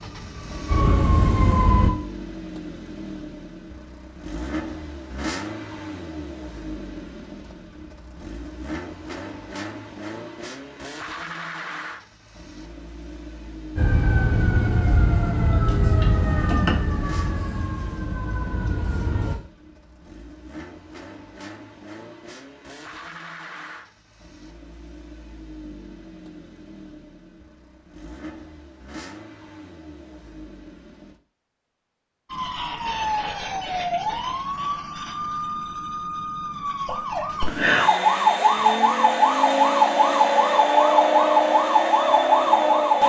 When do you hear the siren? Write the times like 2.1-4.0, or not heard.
0.0-1.9, 13.8-19.4, 32.2-43.0.